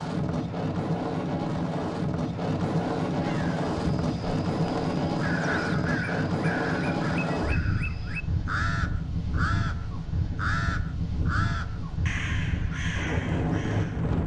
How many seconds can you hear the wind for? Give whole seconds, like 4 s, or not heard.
14 s.